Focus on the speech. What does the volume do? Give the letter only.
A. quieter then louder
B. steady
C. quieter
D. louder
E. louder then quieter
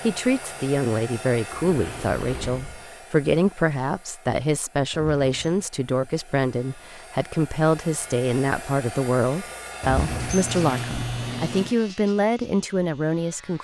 B.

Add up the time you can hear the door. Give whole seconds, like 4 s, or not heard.
4 s.